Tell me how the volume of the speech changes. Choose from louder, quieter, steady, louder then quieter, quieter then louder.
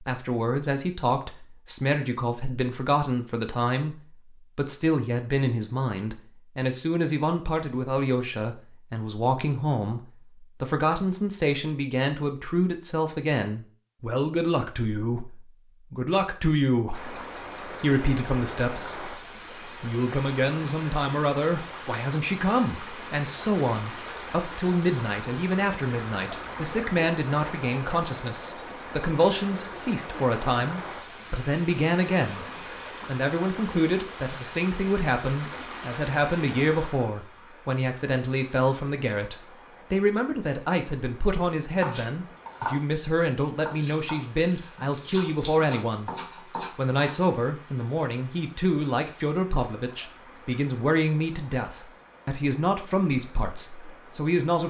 steady.